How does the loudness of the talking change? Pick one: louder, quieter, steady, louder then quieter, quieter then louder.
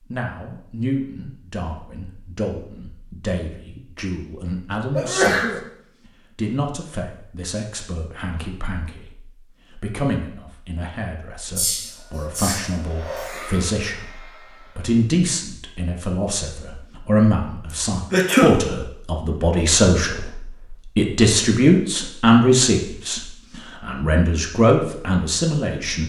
louder.